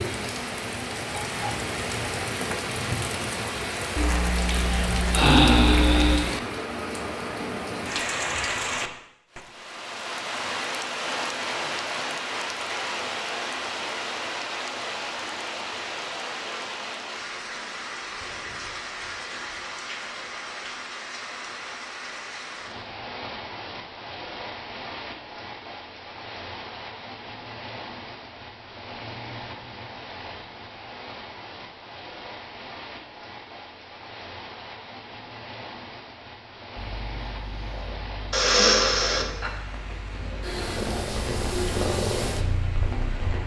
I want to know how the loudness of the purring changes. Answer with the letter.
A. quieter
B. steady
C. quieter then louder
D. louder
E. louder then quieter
D.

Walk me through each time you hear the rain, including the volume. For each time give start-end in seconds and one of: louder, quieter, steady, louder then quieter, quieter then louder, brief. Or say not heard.
0.0-43.4 quieter.